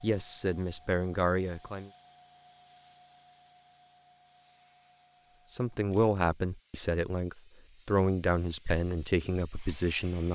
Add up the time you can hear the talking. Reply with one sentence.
The talking can be heard for 7 seconds in total.